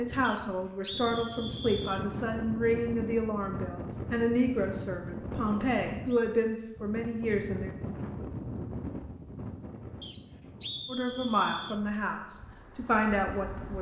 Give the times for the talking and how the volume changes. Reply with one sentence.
You can hear the talking from 0.0 to 7.8 s, at a steady volume; and briefly from 10.8 to 13.7 s.